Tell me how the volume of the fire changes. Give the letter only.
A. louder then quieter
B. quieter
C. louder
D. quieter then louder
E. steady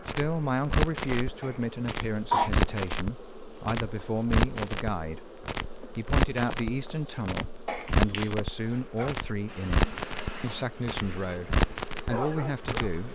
E.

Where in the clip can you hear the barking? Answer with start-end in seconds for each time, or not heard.
8.9-13.1.